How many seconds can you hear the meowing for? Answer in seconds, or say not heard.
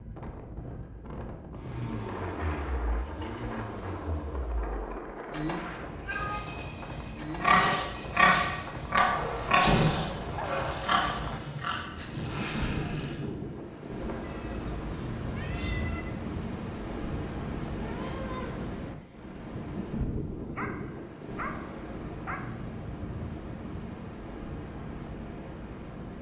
4 s.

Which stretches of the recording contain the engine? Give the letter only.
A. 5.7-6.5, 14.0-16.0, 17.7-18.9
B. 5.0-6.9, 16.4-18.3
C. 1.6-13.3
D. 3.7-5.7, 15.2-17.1
C.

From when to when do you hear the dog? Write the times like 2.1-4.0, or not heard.
9.1-11.0, 20.6-22.4.